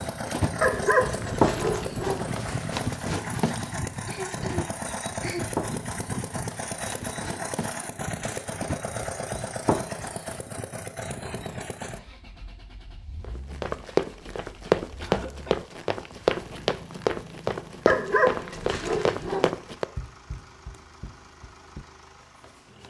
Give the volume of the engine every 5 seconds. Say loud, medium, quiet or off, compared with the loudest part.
loud, loud, medium, quiet, quiet.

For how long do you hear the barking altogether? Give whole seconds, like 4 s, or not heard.
3 s.